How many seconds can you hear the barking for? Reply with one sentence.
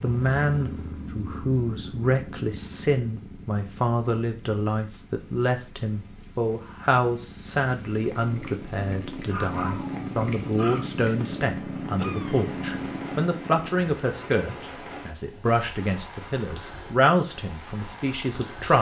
The barking can be heard for 2 seconds in total.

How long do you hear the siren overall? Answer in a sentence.
The siren can't be heard in this clip.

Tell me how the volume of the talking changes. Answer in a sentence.
The volume of the talking stays about the same.